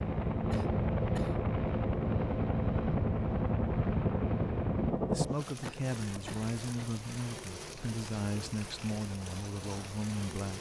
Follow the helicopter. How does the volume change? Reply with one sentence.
The loudness of the helicopter goes down.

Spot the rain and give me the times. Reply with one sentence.
You can hear the rain from 5.2 to 10.5 s.